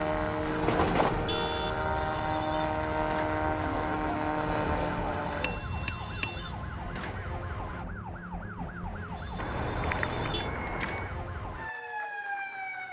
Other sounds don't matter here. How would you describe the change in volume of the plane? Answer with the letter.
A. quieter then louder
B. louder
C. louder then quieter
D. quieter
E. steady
E.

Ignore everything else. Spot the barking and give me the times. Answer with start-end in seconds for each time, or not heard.
not heard.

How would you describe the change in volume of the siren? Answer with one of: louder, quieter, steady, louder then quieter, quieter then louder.
steady.